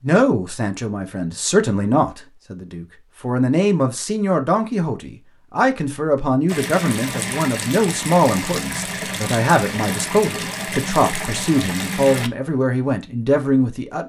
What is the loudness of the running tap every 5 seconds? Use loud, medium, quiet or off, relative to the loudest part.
off, loud, loud.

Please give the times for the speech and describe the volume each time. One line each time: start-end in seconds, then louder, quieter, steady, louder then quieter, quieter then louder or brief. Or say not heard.
0.0-14.0 steady.